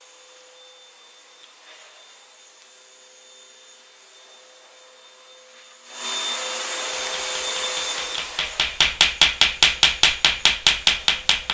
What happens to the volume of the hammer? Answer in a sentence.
The loudness of the hammer goes up.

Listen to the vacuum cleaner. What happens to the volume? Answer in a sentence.
The loudness of the vacuum cleaner goes up, then down.